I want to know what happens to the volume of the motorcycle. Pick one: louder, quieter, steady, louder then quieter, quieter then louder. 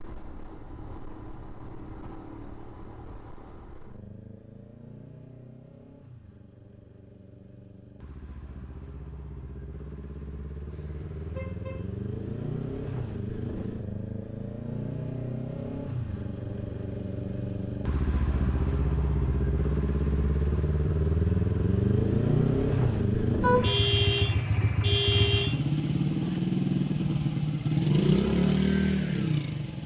louder.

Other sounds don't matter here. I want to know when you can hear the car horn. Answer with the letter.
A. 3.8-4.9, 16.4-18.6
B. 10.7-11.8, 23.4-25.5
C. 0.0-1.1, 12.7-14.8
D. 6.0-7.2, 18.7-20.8
B.